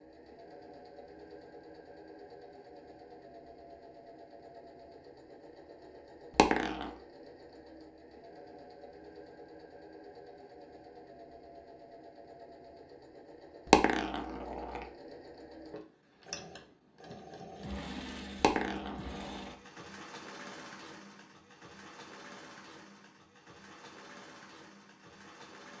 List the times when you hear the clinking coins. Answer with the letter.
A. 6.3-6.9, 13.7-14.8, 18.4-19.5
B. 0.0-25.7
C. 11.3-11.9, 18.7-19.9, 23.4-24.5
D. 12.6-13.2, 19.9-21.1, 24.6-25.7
A.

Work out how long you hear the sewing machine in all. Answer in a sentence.
You can hear the sewing machine for 26 seconds altogether.